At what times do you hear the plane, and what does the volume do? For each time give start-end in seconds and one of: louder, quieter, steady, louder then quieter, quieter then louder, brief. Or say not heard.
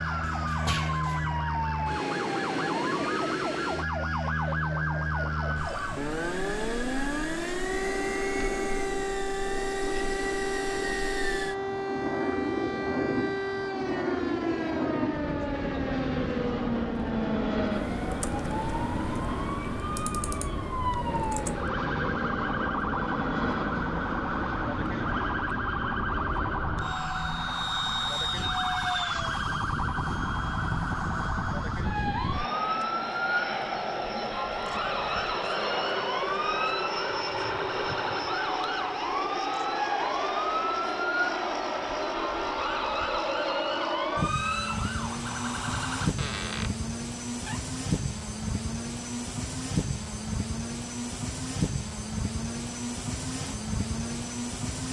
0.0-54.8 steady.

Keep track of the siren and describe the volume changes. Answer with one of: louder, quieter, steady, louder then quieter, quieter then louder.
steady.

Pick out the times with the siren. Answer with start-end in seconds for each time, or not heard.
0.0-46.1.